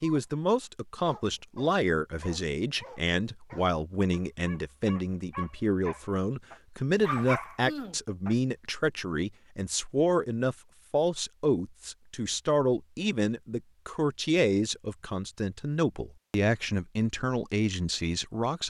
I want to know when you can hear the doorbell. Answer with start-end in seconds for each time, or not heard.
not heard.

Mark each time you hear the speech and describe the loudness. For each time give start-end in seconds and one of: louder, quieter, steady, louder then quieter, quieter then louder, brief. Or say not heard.
0.0-18.6 steady.